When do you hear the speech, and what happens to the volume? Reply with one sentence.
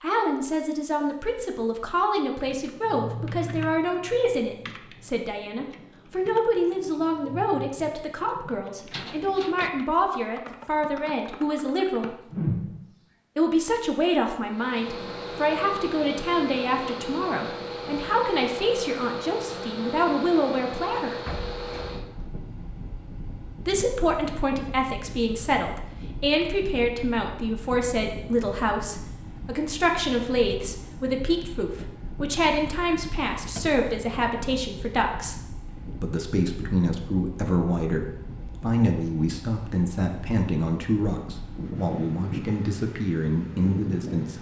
The speech can be heard from 0.0 to 12.2 s, at a steady volume; from 13.3 to 21.1 s, at a steady volume; and from 23.6 to 44.3 s, at a steady volume.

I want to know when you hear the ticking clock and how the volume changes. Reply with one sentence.
You can't hear the ticking clock here.